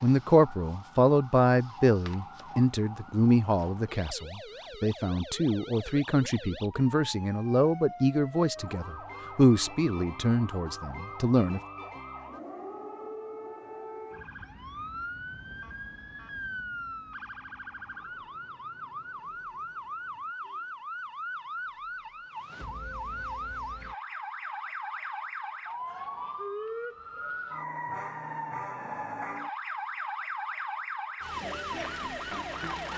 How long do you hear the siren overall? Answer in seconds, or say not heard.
33 s.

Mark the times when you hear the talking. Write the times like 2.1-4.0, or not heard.
0.0-11.6.